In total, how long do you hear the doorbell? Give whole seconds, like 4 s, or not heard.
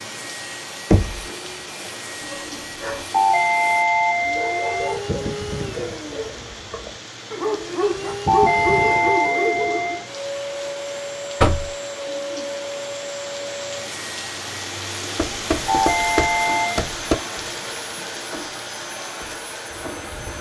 5 s.